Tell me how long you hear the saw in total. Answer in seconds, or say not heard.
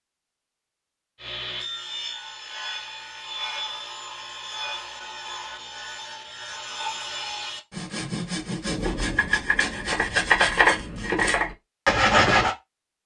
11 s.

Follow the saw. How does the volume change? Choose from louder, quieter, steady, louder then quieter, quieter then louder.
louder.